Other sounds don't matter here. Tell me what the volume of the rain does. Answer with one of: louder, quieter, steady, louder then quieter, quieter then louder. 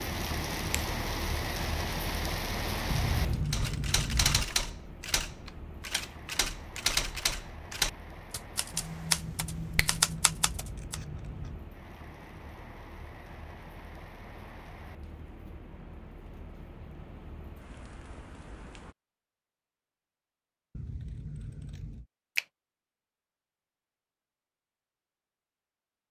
quieter.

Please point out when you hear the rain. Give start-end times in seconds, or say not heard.
0.0-18.9.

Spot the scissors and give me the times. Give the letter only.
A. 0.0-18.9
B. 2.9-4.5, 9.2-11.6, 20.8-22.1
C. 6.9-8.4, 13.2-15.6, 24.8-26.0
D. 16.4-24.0
B.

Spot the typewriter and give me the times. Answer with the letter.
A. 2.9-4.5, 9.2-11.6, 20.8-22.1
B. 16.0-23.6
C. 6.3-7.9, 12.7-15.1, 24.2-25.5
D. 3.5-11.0
D.